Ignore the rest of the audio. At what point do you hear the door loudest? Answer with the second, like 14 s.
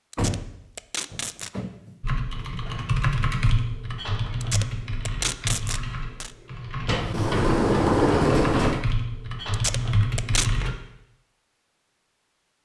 8 s.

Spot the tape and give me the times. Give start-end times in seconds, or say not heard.
0.1-1.5, 4.4-6.3, 9.5-10.5.